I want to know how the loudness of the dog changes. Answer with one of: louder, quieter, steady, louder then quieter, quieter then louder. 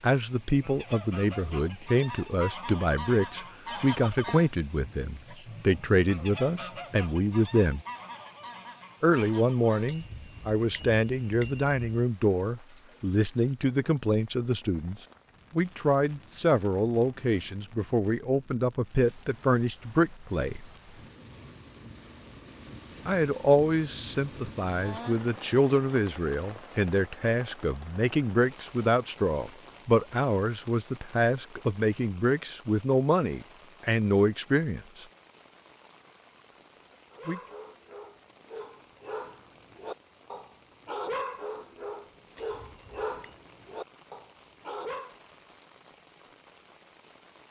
louder then quieter.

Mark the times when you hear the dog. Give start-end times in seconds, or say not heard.
37.1-45.1.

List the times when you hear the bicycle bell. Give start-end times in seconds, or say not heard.
9.8-12.1, 42.4-43.4.